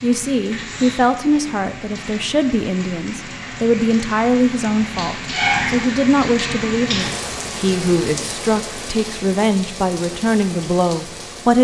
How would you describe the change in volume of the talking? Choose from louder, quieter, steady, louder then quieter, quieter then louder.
steady.